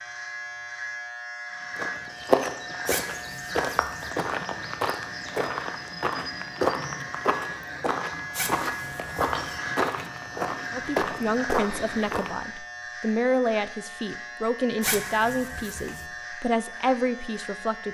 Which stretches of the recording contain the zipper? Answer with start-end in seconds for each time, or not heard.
2.9-4.1, 8.3-9.6, 14.8-16.1.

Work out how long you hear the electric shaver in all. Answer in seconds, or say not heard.
18 s.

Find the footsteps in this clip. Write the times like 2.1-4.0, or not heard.
1.8-12.3.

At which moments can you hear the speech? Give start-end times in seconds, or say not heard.
10.7-17.8.